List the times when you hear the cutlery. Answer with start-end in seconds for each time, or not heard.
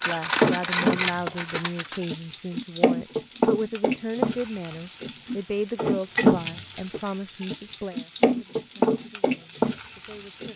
0.0-2.0.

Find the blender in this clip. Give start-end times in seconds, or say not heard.
not heard.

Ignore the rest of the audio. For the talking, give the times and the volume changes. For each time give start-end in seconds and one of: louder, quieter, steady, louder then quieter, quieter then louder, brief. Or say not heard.
0.0-10.5 quieter.